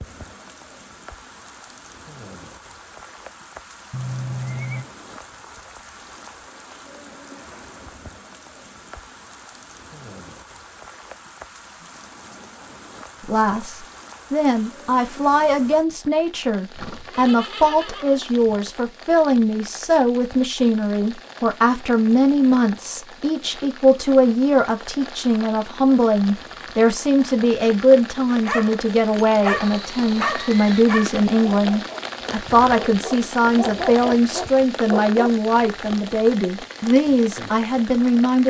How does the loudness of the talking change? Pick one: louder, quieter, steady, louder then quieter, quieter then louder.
steady.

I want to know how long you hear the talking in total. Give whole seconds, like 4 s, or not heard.
25 s.